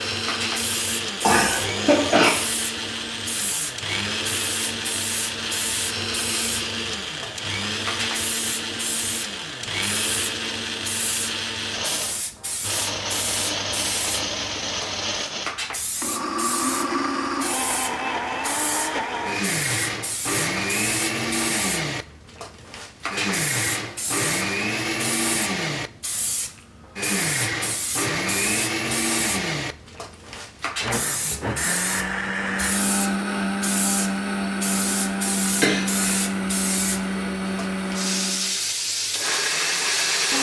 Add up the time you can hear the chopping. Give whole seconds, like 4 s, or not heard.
not heard.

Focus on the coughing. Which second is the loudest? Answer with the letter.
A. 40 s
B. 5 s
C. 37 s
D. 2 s
D.